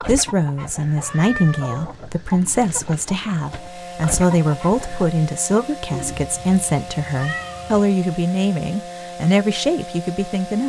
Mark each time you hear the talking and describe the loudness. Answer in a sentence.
You can hear the talking from 0.1 to 10.6 s, at a steady volume.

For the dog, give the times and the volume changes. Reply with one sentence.
The dog can't be heard in this clip.